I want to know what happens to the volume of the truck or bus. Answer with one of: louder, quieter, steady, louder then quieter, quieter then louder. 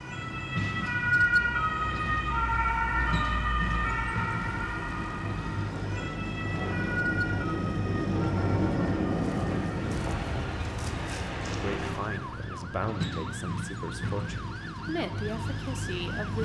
steady.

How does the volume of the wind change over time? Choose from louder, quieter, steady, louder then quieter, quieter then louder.
louder then quieter.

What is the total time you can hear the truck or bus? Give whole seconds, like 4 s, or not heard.
16 s.